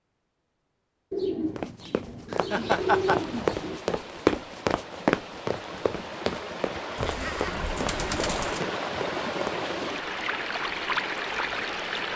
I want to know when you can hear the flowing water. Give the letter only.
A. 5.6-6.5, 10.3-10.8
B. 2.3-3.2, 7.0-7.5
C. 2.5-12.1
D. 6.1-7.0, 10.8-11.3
C.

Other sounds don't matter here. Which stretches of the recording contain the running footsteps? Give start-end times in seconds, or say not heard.
1.6-9.6.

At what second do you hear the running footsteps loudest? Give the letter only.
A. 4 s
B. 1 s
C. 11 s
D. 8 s
A.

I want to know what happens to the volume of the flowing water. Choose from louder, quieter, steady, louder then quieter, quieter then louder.
louder.